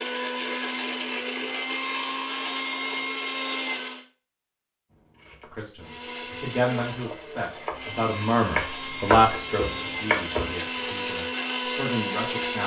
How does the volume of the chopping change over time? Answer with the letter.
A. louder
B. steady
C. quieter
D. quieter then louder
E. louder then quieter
E.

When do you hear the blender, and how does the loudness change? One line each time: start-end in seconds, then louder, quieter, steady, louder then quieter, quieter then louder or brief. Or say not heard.
0.0-4.0 steady
5.8-12.6 louder.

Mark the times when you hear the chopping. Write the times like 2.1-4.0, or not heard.
5.2-10.5.